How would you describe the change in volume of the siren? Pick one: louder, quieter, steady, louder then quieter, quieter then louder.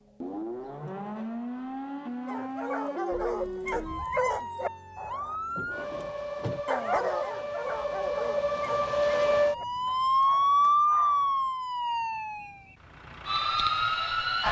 louder then quieter.